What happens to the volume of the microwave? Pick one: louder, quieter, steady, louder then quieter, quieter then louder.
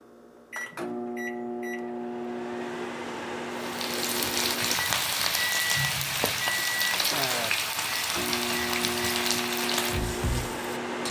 steady.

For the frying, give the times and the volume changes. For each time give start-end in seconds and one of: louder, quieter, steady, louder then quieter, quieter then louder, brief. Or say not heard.
3.5-11.0 steady.